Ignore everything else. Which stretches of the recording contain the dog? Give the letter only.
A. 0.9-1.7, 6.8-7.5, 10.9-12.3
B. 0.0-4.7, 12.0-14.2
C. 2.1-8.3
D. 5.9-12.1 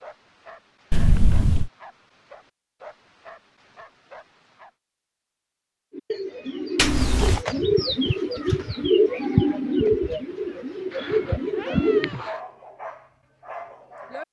B.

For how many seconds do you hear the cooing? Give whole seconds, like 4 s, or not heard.
6 s.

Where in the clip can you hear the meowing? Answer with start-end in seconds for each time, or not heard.
0.9-1.7, 6.8-7.5, 10.9-12.3.